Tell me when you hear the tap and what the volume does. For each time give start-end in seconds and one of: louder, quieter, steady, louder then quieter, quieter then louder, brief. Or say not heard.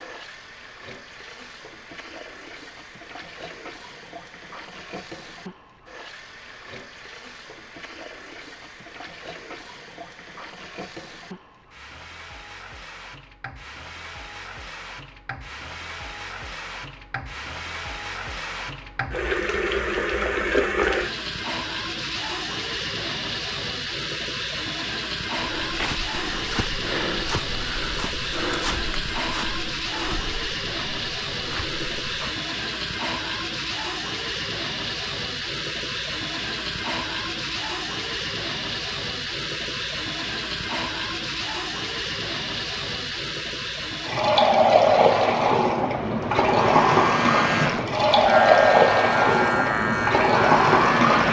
0.0-51.2 louder.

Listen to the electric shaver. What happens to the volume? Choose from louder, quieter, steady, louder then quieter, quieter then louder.
steady.